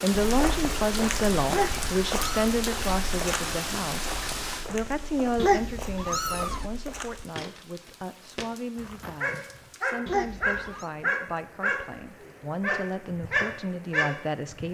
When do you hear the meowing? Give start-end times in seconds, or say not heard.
1.4-2.5, 5.3-6.7, 10.1-10.8.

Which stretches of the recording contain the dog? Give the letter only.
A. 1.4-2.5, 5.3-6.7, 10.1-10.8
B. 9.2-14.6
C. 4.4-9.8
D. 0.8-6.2
B.